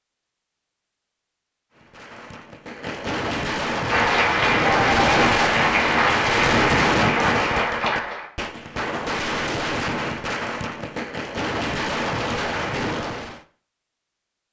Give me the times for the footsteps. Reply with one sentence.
You can't hear the footsteps here.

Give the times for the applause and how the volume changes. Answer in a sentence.
You can hear the applause from 3.8 to 8.3 s, at a steady volume.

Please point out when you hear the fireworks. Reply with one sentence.
The fireworks can be heard from 1.7 to 13.4 s.